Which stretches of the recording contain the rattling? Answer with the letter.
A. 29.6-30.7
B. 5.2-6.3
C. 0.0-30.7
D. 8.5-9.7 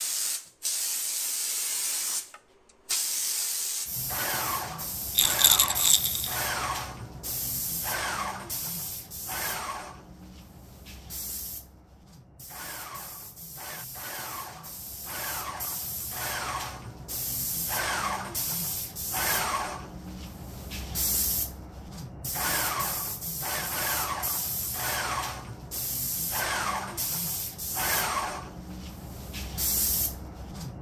B.